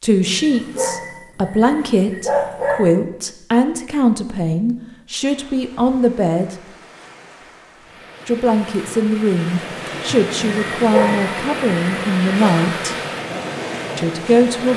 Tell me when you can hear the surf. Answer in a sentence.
The surf can be heard from 5.2 to 14.7 s.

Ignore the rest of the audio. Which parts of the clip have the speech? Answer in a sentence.
You can hear the speech from 0.0 to 6.5 s, from 8.2 to 12.9 s and from 13.9 to 14.7 s.